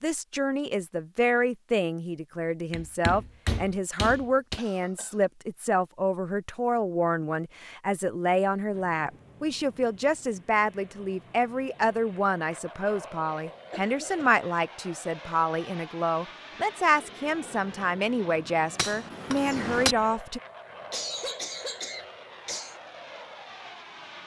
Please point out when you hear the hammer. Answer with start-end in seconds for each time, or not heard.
2.7-4.6, 18.8-19.9.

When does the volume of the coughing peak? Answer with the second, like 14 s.
21 s.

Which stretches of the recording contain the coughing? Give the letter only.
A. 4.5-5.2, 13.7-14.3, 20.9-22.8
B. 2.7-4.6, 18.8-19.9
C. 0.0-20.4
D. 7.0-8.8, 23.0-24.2
A.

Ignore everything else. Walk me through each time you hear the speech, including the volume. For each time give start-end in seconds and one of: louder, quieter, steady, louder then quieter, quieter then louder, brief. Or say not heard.
0.0-20.4 steady.